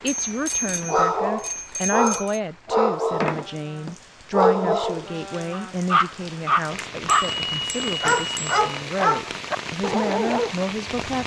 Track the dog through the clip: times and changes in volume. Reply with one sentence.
You can hear the dog from 0.7 to 10.5 s, at a steady volume.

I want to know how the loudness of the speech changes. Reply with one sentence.
The volume of the speech goes down, then up.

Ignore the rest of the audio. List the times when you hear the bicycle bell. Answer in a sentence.
The bicycle bell can be heard from 0.1 to 2.4 s and from 6.8 to 8.8 s.